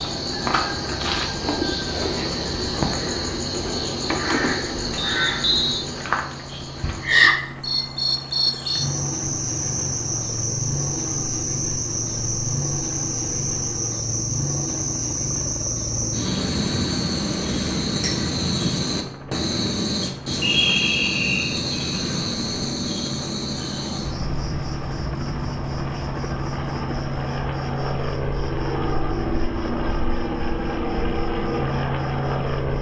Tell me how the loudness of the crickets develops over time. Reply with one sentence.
The loudness of the crickets goes down.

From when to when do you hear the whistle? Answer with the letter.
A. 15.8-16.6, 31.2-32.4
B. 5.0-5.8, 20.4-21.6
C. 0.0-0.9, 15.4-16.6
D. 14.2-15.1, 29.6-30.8
B.